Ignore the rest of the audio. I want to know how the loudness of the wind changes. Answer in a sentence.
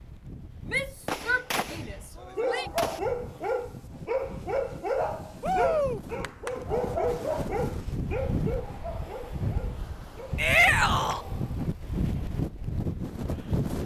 The volume of the wind goes up.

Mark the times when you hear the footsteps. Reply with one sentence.
You can't hear the footsteps here.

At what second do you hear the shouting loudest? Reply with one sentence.
The volume of the shouting peaks at 11 seconds.